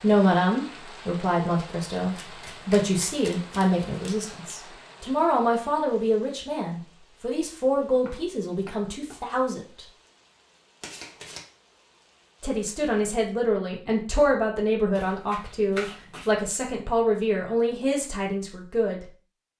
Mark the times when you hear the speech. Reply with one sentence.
You can hear the speech from 0.0 to 9.8 s and from 12.4 to 19.1 s.